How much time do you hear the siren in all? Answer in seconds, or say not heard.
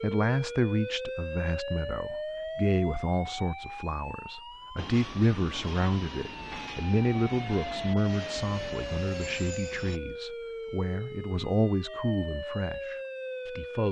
14 s.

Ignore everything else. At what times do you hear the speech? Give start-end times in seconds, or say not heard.
0.0-13.8.